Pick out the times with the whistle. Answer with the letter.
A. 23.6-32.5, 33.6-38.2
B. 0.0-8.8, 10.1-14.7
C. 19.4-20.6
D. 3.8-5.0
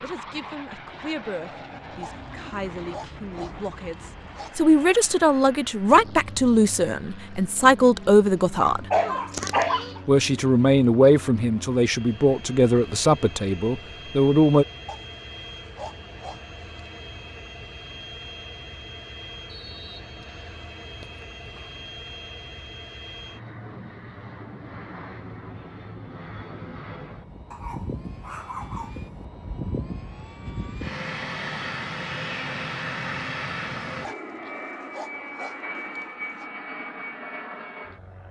C.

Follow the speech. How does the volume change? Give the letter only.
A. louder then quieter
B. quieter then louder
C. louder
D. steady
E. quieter
C.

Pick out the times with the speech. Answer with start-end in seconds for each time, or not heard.
0.0-8.8, 10.1-14.7.